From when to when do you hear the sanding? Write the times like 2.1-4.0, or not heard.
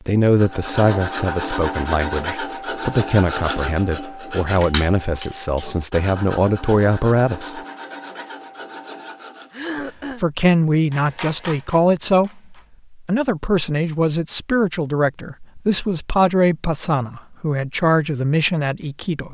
0.3-9.6.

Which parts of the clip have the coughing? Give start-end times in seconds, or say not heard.
9.5-10.2.